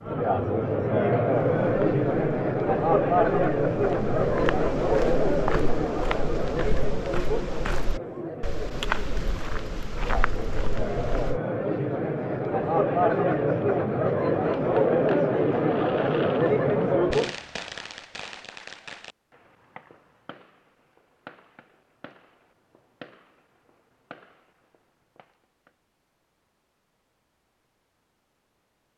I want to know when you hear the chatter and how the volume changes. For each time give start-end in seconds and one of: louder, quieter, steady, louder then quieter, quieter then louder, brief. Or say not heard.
0.0-17.4 quieter then louder.